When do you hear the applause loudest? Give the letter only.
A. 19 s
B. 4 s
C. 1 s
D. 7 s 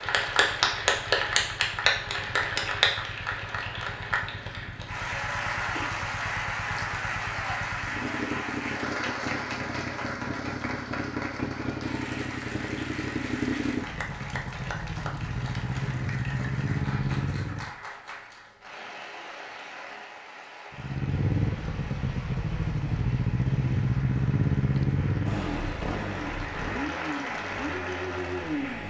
C.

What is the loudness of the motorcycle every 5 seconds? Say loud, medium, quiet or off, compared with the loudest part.
quiet, medium, medium, loud, loud, medium.